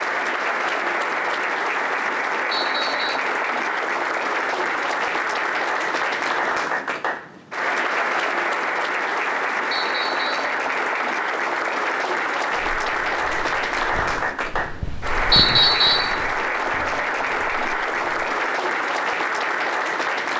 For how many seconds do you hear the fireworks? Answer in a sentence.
You can't hear the fireworks here.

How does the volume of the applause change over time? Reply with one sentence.
The volume of the applause stays about the same.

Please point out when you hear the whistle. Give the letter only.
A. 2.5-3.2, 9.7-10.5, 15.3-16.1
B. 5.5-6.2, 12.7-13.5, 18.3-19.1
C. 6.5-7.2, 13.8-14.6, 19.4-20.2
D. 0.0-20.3
A.